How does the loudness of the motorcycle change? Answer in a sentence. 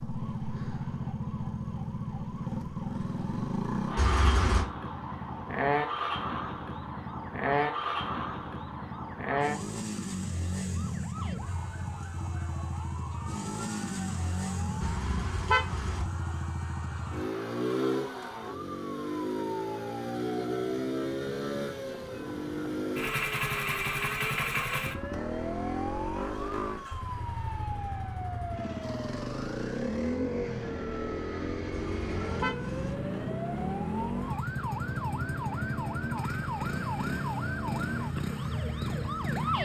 The volume of the motorcycle stays about the same.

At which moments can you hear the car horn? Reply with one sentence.
The car horn can be heard from 4.0 to 4.7 s, from 14.8 to 16.1 s and from 31.7 to 33.0 s.